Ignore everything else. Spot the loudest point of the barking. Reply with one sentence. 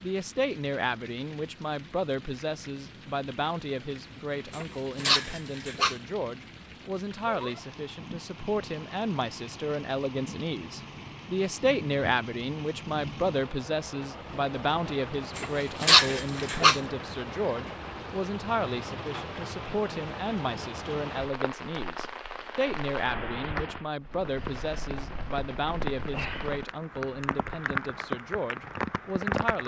The volume of the barking peaks at 16 seconds.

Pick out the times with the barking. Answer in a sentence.
The barking can be heard from 4.5 to 6.0 s and from 15.3 to 16.8 s.